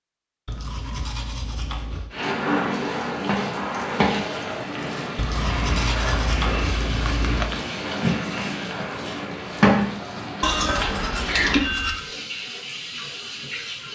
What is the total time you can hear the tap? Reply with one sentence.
The tap can be heard for 12 seconds in total.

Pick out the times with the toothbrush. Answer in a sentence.
You can hear the toothbrush from 0.5 to 2.1 s, from 5.2 to 7.6 s and from 10.4 to 12.0 s.